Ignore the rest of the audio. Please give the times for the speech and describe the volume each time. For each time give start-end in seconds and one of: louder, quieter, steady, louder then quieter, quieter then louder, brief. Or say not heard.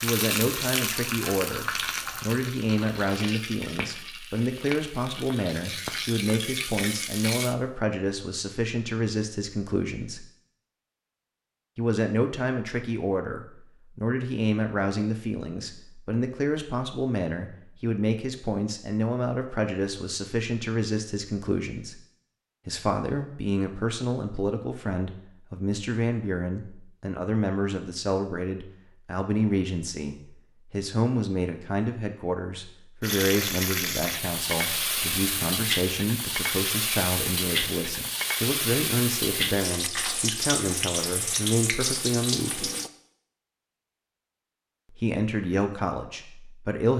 0.0-10.2 steady
11.8-21.9 steady
22.6-42.7 steady
45.0-46.9 brief.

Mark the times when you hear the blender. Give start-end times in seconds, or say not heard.
not heard.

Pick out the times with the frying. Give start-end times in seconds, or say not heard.
0.0-7.5, 33.0-42.9.